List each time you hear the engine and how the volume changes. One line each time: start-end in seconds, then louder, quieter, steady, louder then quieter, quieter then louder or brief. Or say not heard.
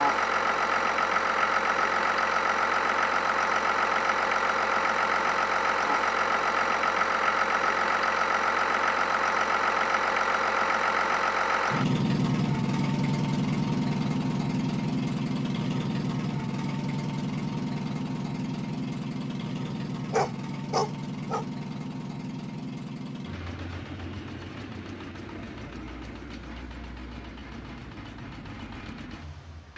0.0-29.7 quieter.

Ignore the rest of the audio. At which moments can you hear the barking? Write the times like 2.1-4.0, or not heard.
19.6-21.4.